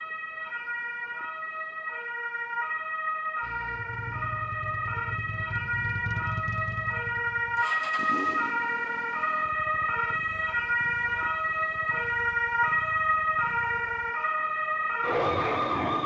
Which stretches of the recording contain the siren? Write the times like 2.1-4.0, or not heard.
0.0-16.0.